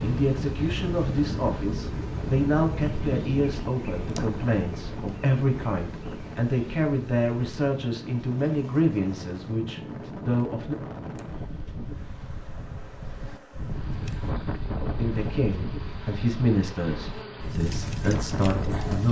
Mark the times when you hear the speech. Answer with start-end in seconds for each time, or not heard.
0.0-10.8, 14.9-19.0.